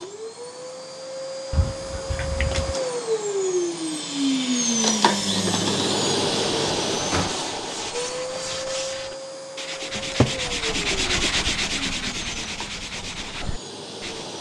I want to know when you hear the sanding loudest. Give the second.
11 s.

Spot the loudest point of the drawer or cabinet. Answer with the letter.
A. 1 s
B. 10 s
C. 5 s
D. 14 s
B.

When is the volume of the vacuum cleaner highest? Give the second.
5 s.